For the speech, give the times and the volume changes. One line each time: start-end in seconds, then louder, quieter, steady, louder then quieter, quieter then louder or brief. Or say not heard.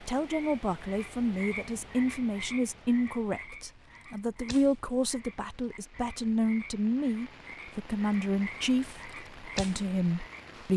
0.0-10.7 steady.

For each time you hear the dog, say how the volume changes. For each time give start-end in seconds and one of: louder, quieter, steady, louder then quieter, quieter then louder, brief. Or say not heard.
not heard.